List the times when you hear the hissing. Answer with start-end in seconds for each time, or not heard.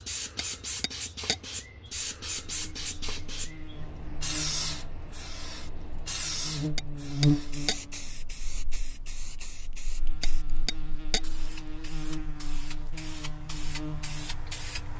0.0-14.9.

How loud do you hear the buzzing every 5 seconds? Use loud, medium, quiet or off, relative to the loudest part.
quiet, loud, medium.